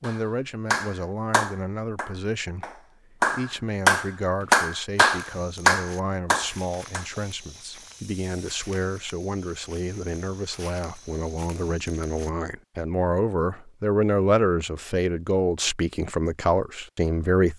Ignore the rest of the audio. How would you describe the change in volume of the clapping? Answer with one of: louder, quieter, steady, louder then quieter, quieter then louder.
quieter then louder.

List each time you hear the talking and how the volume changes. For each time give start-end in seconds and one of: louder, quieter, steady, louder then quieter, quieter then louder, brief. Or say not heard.
0.0-17.5 louder.